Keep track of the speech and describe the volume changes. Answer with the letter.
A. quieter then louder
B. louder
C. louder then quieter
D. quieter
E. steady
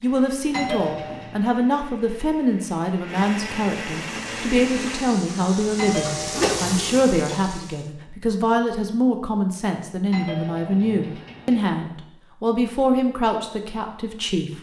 E.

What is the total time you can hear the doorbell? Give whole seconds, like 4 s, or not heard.
4 s.